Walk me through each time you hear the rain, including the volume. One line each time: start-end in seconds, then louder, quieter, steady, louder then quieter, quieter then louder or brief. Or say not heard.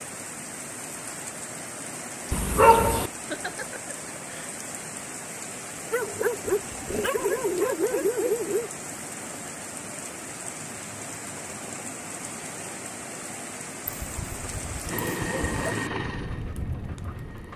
0.0-17.5 steady.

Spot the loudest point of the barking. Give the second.
3 s.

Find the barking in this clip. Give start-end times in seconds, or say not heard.
2.3-3.1, 5.9-8.7, 13.8-15.8.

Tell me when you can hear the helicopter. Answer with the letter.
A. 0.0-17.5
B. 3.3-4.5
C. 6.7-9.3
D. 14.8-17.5
D.